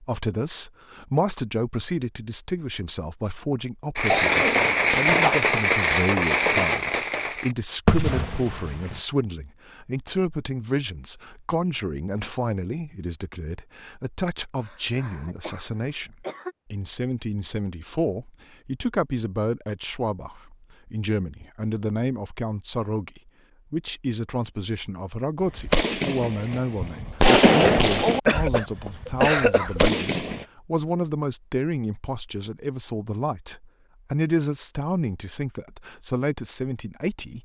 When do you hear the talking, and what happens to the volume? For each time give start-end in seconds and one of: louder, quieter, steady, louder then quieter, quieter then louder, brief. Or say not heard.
0.0-37.3 steady.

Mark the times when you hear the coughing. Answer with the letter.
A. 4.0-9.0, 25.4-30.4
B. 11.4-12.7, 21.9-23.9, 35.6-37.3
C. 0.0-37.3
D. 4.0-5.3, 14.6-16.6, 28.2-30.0
D.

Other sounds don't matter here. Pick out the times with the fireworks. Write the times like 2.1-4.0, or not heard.
4.0-9.0, 25.4-30.4.